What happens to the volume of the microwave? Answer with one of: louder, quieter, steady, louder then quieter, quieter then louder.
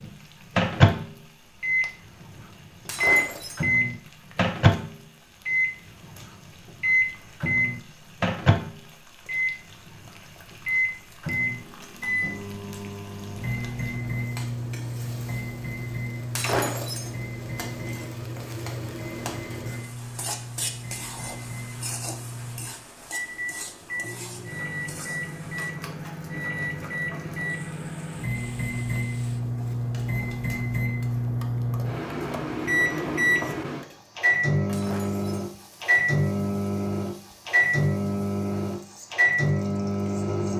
quieter then louder.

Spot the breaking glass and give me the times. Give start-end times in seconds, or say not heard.
2.9-3.6, 16.4-17.1, 34.7-35.3.